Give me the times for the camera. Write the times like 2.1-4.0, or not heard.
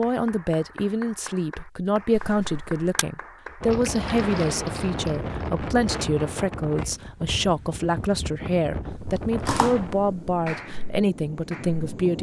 2.1-3.0, 8.9-10.4.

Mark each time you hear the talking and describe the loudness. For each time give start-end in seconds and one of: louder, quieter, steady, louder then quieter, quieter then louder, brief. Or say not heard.
0.0-12.1 steady.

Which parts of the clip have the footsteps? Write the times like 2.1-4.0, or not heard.
not heard.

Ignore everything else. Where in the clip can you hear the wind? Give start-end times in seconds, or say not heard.
3.6-12.1.